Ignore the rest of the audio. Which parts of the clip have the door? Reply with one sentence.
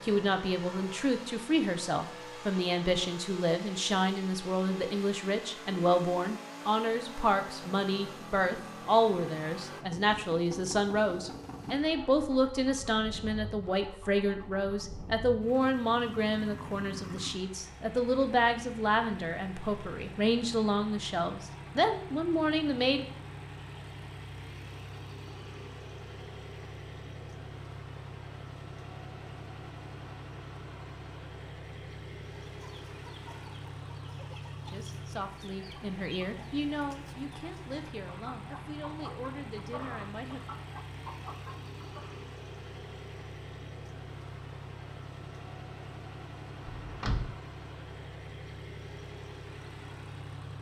You can hear the door from 46.6 to 47.4 s.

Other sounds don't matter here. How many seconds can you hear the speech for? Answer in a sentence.
The speech can be heard for 29 seconds in total.